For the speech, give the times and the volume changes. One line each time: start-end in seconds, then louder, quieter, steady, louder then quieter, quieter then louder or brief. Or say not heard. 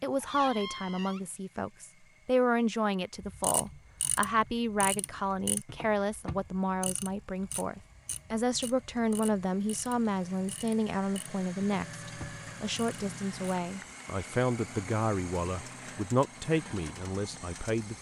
0.0-17.9 steady.